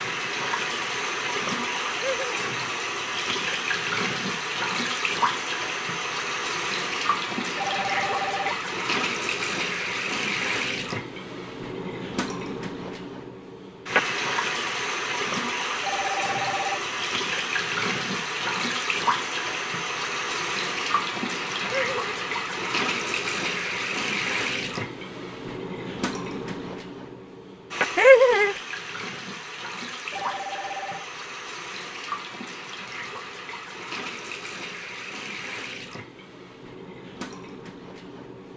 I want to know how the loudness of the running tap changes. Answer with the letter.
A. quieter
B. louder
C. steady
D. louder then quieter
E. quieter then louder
A.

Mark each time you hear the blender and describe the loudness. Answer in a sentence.
The blender can't be heard in this clip.